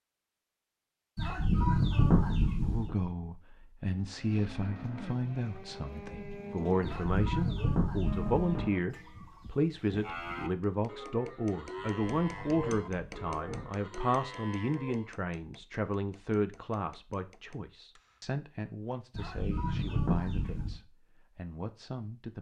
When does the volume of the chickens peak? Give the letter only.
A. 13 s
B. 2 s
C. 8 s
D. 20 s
B.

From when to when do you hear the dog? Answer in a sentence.
You can't hear the dog here.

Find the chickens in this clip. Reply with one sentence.
The chickens can be heard from 1.1 to 3.0 s, from 6.8 to 8.7 s, from 11.8 to 13.7 s and from 19.1 to 20.8 s.